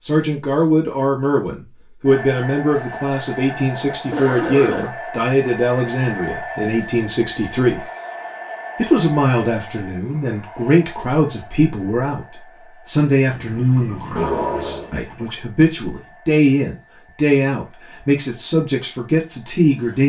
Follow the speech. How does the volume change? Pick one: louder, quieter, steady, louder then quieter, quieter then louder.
steady.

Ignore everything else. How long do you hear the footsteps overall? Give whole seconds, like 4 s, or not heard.
not heard.